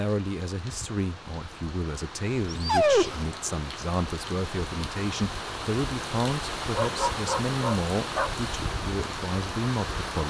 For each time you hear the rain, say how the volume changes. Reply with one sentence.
The rain can be heard from 0.0 to 10.2 s, getting louder.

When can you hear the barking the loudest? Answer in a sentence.
The loudest moment of the barking is at 3 seconds.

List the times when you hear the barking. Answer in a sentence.
The barking can be heard from 2.5 to 3.3 s and from 6.7 to 8.3 s.